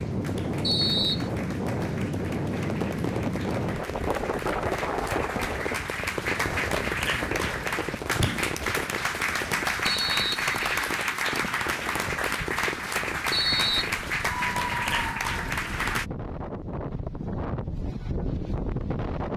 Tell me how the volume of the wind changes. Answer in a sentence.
The loudness of the wind goes down, then up.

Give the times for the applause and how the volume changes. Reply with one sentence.
The applause can be heard from 0.0 to 16.1 s, getting louder.